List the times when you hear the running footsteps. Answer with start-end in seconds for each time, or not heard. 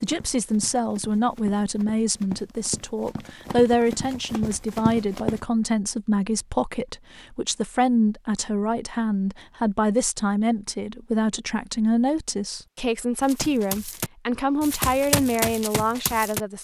0.0-5.4, 13.2-16.4.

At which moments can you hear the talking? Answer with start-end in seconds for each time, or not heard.
0.0-16.5.